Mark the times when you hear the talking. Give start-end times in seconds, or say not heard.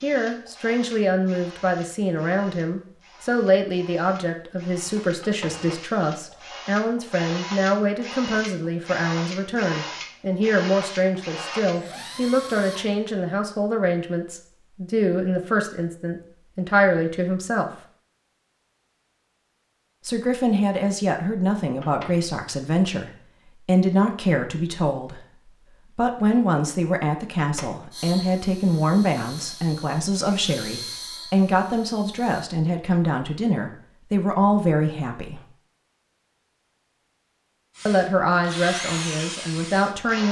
0.0-17.7, 20.1-35.5, 37.9-40.2.